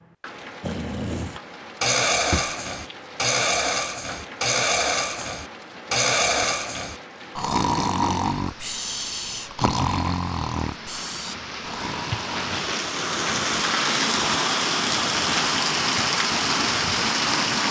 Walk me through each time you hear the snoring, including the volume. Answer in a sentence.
The snoring can be heard from 0.6 to 12.7 s, getting quieter.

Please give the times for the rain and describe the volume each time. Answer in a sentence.
You can hear the rain from 0.0 to 17.6 s, getting louder.